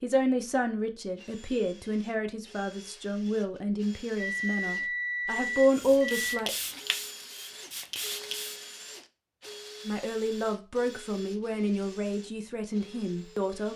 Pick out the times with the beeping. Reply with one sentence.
You can hear the beeping from 4.2 to 6.5 s.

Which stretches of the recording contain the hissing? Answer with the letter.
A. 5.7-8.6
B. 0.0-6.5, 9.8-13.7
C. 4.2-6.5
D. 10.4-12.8
A.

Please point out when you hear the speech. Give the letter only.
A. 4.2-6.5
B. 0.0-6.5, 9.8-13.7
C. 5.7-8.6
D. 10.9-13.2
B.